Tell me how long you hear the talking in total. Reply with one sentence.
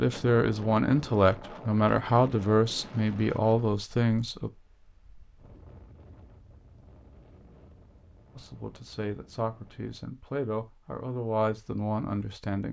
You can hear the talking for 9 seconds altogether.